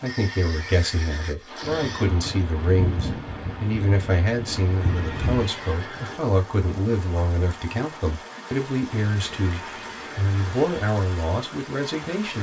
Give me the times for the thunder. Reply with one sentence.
You can hear the thunder from 1.6 to 5.5 s.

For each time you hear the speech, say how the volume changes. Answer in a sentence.
You can hear the speech from 0.0 to 12.3 s, at a steady volume.